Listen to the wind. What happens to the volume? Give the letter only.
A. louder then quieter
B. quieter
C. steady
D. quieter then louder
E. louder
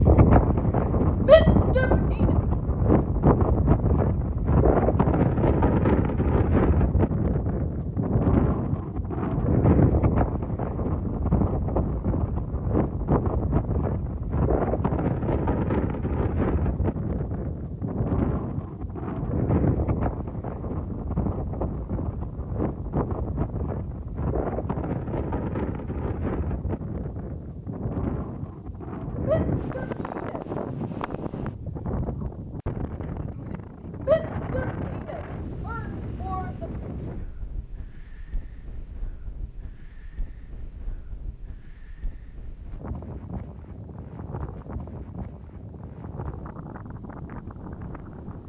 B.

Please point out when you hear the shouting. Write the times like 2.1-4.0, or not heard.
1.2-1.9, 29.2-30.4, 34.0-36.6.